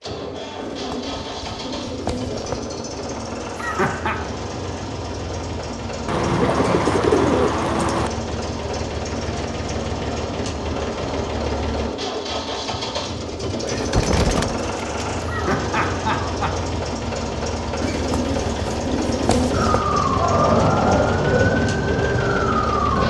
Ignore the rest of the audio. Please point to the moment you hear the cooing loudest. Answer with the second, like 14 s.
7 s.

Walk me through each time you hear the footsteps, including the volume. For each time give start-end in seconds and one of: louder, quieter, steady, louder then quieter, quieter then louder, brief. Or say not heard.
not heard.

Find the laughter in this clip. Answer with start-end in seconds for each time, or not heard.
3.5-4.2, 15.2-16.6.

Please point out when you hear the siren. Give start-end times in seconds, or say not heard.
19.5-23.0.